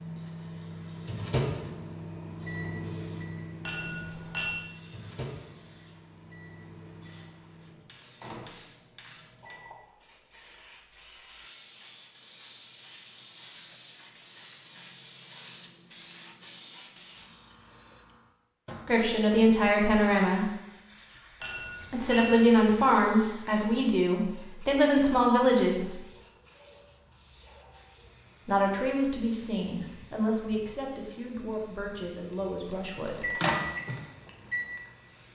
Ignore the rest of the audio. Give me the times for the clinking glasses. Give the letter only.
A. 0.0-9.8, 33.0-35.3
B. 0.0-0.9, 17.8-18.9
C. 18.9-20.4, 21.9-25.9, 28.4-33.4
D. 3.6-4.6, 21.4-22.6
D.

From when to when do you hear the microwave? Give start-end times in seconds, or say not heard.
0.0-9.8, 33.0-35.3.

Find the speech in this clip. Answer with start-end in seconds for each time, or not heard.
18.9-20.4, 21.9-25.9, 28.4-33.4.